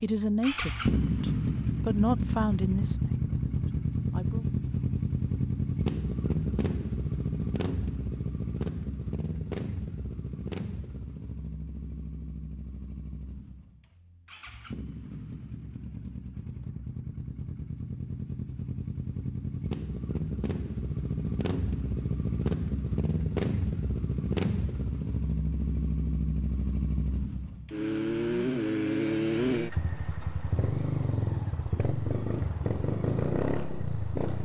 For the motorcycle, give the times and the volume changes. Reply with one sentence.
You can hear the motorcycle from 0.2 to 34.4 s, getting quieter then louder.